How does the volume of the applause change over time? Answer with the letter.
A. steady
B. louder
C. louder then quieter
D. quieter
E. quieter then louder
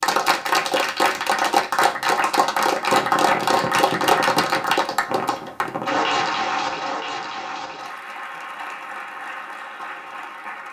D.